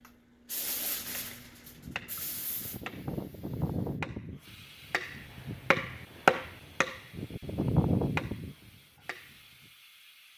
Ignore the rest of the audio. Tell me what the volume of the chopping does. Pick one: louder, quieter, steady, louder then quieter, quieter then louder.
louder.